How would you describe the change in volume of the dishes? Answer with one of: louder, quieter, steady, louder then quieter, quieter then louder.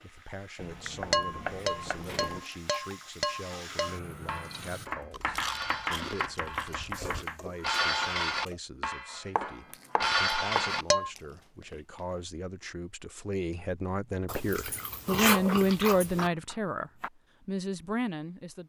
quieter then louder.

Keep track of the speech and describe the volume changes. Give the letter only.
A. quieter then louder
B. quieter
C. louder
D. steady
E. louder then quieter
C.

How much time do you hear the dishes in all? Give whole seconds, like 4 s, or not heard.
10 s.